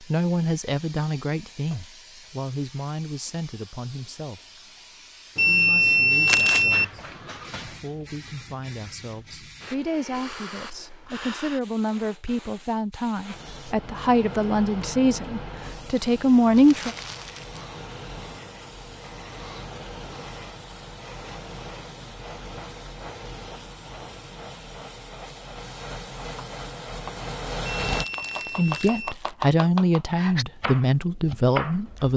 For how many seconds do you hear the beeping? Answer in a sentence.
The beeping can be heard for 3 seconds in total.